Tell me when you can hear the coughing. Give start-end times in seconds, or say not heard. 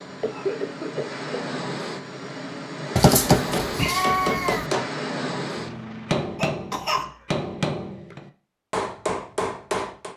0.1-1.2, 6.3-7.1.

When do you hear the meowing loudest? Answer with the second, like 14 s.
3 s.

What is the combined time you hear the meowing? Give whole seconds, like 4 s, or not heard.
2 s.